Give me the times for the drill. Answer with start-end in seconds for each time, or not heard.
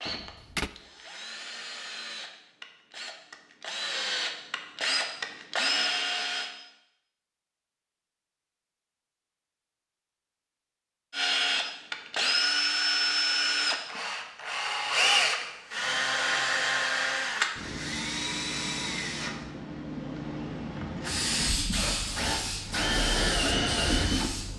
0.0-6.5, 11.1-24.5.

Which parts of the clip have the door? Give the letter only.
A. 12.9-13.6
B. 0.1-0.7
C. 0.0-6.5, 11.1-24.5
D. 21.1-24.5
B.